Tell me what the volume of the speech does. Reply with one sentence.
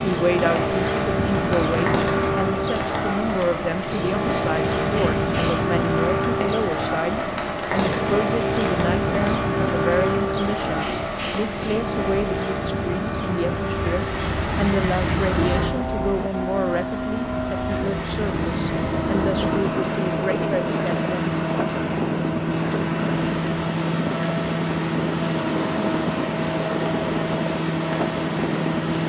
The loudness of the speech stays about the same.